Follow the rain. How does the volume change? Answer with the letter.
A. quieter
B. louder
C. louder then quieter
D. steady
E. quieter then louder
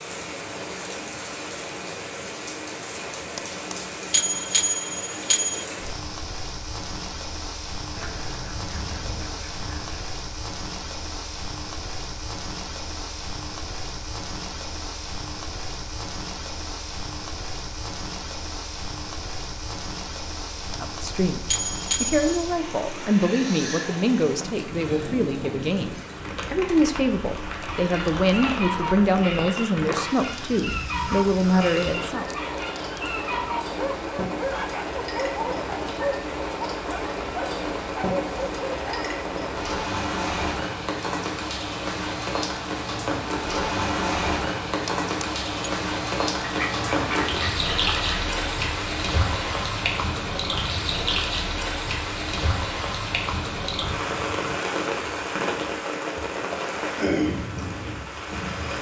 B.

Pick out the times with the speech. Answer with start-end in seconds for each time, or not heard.
20.8-21.4, 22.0-32.3.